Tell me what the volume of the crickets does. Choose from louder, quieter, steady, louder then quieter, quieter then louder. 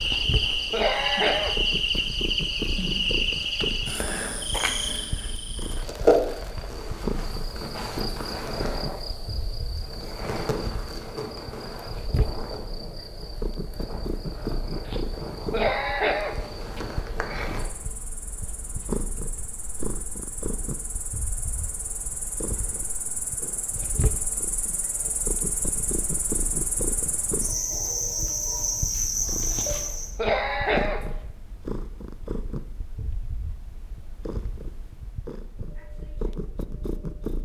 quieter then louder.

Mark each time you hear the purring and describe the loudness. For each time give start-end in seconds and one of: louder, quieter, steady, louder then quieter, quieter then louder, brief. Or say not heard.
0.0-37.4 steady.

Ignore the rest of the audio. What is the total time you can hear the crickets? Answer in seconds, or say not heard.
30 s.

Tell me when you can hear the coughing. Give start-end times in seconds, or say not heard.
0.0-2.0, 14.8-16.8, 29.5-31.1.